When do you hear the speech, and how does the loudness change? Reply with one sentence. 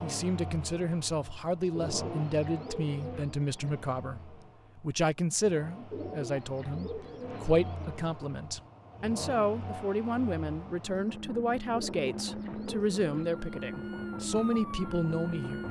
You can hear the speech from 0.0 to 15.6 s, at a steady volume.